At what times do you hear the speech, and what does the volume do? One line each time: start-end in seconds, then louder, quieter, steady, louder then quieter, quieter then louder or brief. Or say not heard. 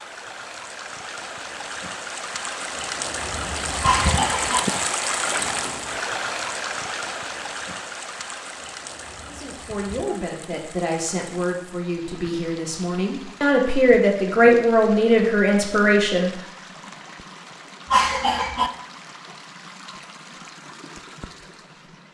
9.2-16.3 louder.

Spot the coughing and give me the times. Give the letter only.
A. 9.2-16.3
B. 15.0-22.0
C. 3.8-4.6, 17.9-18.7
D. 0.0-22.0
C.